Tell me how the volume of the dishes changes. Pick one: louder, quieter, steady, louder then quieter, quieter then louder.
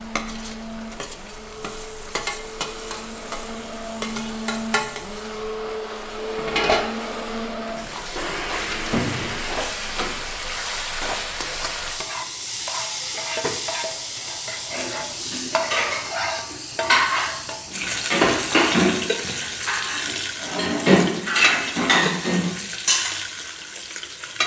louder.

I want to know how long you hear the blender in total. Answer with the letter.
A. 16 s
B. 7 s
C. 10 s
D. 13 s
C.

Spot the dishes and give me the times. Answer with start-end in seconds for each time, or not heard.
14.7-23.1.